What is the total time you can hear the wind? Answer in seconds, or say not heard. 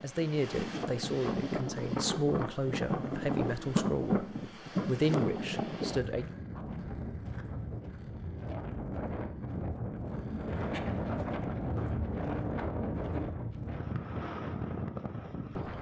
16 s.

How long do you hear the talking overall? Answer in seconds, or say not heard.
6 s.